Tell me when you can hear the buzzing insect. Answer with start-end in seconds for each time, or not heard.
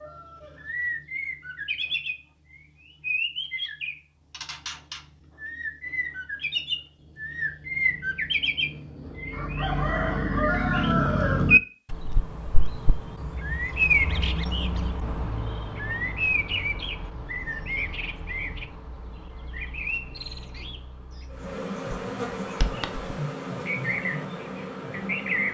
21.3-25.4.